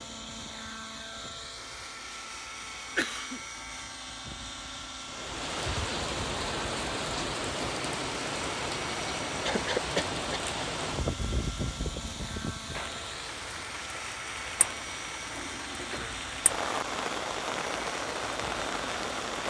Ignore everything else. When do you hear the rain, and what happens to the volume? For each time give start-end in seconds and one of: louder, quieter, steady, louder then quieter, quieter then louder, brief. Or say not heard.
5.0-19.4 quieter then louder.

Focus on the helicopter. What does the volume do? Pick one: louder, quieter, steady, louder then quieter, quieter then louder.
steady.